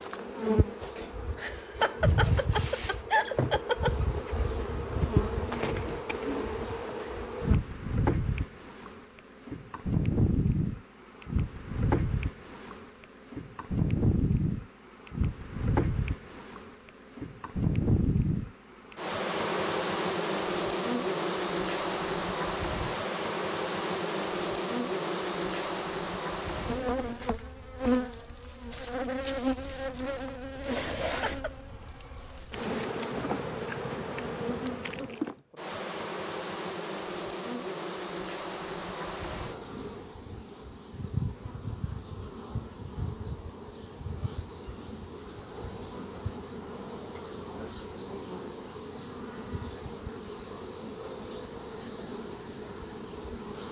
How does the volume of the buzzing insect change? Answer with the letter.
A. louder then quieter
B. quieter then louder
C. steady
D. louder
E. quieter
E.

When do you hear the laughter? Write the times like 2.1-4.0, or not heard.
1.4-4.0, 31.1-31.6.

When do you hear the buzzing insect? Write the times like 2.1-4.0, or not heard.
0.0-53.6.